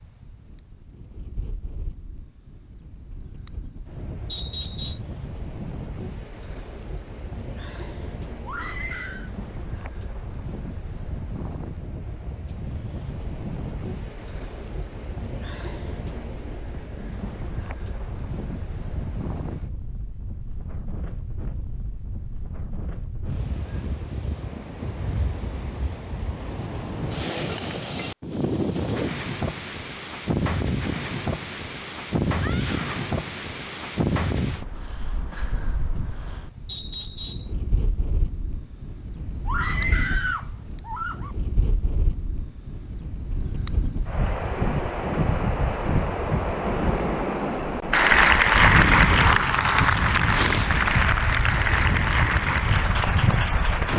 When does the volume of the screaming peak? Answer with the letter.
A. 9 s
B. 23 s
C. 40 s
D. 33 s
C.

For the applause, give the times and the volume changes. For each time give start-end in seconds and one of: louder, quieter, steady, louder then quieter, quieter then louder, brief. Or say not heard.
47.9-53.9 quieter.